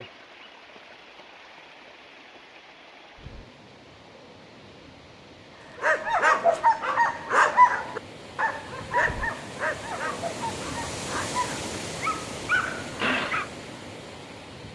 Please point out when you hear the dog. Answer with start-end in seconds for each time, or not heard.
5.8-13.4.